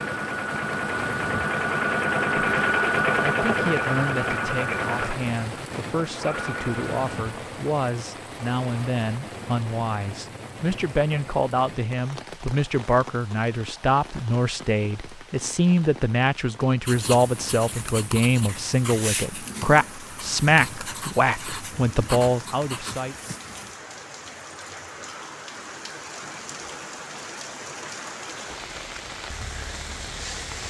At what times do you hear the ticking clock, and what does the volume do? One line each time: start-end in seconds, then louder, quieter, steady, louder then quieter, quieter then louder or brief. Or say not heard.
not heard.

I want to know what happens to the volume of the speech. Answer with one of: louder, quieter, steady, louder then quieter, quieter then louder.
louder.